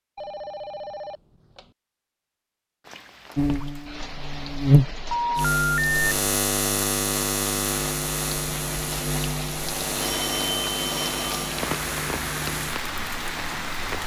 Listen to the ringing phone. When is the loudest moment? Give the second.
6 s.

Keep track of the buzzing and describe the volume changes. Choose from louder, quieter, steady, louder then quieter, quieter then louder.
quieter.